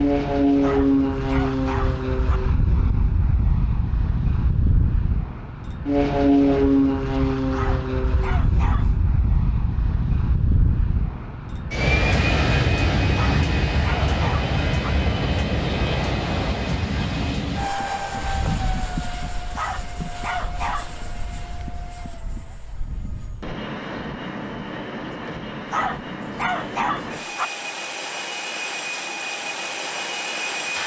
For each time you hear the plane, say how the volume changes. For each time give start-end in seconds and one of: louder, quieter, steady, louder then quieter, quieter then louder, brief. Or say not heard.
0.0-30.8 quieter.